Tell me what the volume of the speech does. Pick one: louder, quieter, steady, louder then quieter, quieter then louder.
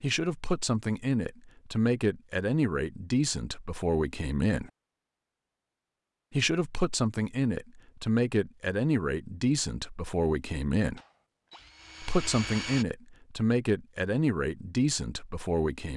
steady.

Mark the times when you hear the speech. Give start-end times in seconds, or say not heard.
0.0-4.7, 6.3-11.0, 12.0-15.9.